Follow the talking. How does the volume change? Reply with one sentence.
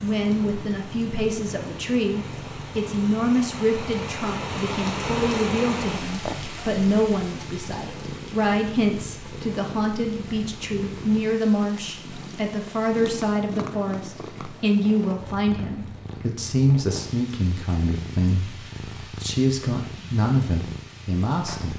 The volume of the talking stays about the same.